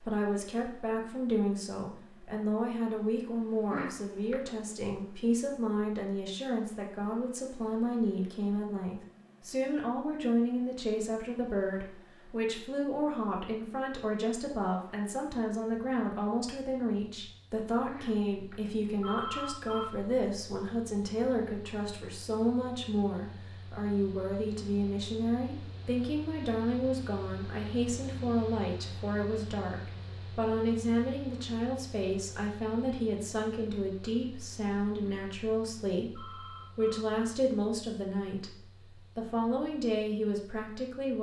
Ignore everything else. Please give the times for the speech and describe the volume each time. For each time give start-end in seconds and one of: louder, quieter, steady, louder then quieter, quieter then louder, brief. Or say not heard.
0.0-41.1 steady.